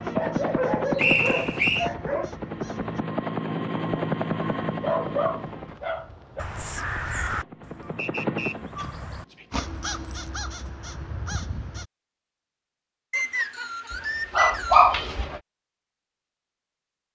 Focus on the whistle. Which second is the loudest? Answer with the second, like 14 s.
1 s.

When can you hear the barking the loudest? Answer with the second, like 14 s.
15 s.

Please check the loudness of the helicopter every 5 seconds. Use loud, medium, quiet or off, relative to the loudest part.
loud, medium, off, off.